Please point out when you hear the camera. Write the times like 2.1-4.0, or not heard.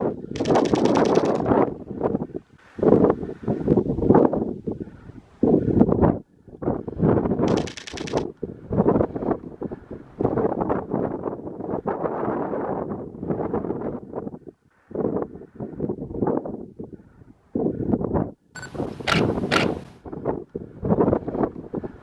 0.3-1.4, 7.5-8.2, 18.6-19.9.